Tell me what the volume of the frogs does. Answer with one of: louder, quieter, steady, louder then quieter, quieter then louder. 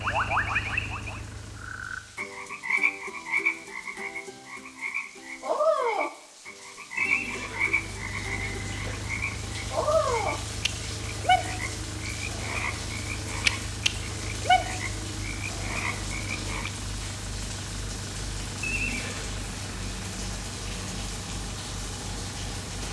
steady.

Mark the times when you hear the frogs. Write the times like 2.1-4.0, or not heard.
0.0-16.7.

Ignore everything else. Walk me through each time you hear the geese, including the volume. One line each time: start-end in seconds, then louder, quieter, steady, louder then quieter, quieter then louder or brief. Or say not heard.
not heard.